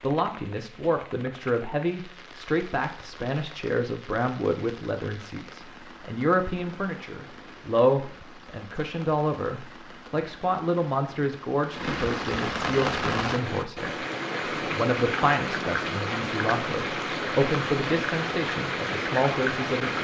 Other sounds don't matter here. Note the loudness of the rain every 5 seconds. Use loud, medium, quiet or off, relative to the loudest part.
quiet, quiet, loud, loud.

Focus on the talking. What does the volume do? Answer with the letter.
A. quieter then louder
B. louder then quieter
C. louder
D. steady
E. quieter
D.